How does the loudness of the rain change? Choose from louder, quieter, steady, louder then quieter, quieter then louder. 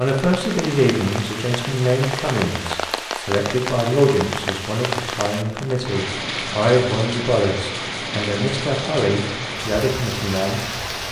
steady.